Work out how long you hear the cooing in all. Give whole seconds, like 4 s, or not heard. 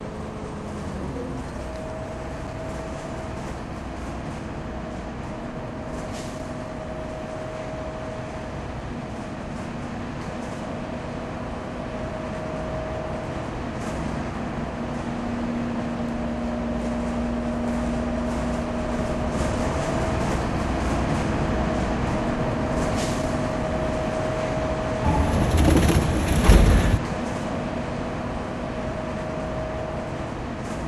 2 s.